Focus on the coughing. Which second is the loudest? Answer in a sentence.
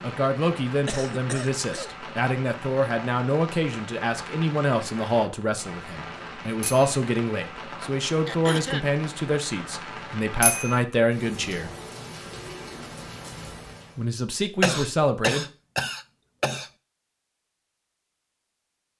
The loudest moment of the coughing is at 15 seconds.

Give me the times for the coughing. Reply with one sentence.
The coughing can be heard from 0.8 to 1.9 s, from 8.2 to 8.9 s and from 14.6 to 16.7 s.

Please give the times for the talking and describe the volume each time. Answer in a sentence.
The talking can be heard from 0.0 to 11.7 s, at a steady volume; and briefly from 13.9 to 15.4 s.